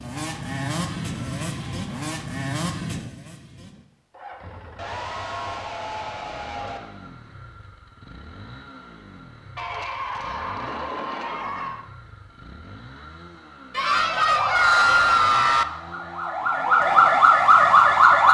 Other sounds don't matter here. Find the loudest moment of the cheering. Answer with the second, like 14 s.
15 s.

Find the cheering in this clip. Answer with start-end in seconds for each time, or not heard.
0.2-2.1, 4.8-6.8, 9.6-11.8, 13.8-15.7.